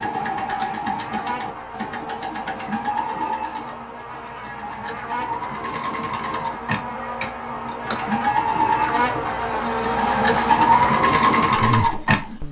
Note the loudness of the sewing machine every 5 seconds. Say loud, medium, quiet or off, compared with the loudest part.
medium, medium, loud.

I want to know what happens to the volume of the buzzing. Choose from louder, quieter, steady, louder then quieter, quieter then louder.
louder.